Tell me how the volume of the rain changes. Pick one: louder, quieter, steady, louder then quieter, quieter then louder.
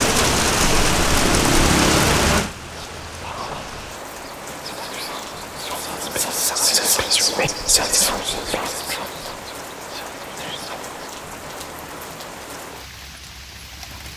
quieter.